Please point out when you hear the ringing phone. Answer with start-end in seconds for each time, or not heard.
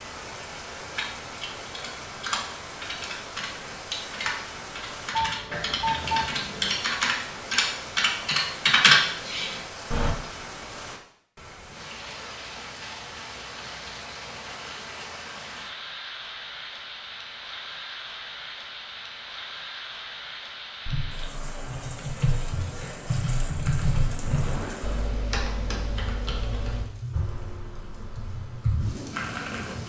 5.1-6.8.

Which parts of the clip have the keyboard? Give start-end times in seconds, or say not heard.
0.9-10.2, 20.9-29.8.